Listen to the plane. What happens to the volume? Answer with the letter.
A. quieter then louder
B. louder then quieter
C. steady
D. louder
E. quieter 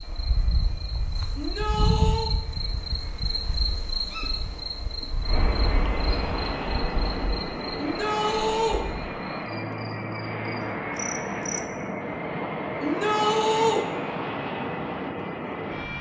D.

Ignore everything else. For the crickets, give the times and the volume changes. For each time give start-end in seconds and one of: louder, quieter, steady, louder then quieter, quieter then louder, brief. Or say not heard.
0.0-11.8 quieter.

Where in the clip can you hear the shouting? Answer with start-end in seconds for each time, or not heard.
1.4-2.3, 7.8-8.8, 12.8-13.8.